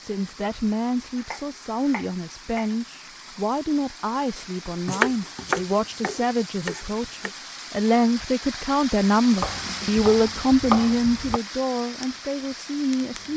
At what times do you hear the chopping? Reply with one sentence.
You can hear the chopping from 1.1 to 2.8 s, from 4.8 to 7.3 s and from 9.4 to 11.4 s.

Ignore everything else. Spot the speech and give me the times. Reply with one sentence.
You can hear the speech from 0.0 to 13.3 s.